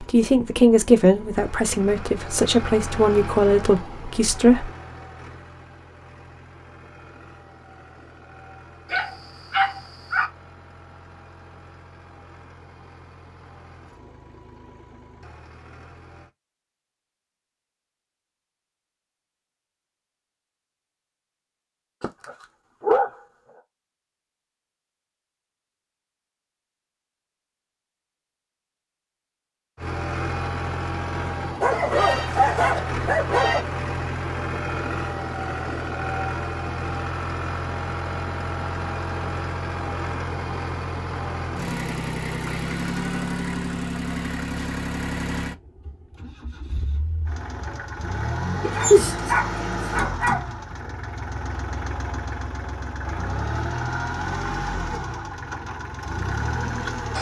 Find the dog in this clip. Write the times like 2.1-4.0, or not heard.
8.9-10.2, 22.0-23.1, 31.6-33.6, 48.6-50.5.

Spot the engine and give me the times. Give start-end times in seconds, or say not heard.
0.0-16.3, 29.8-57.1.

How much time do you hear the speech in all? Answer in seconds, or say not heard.
5 s.